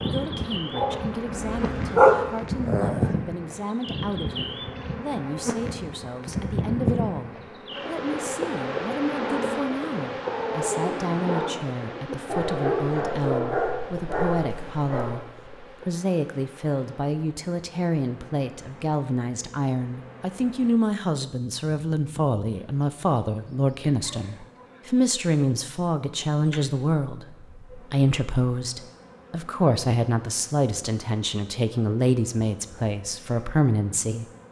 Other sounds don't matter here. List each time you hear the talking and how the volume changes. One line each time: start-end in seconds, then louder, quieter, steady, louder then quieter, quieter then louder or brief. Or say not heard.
0.0-34.2 louder.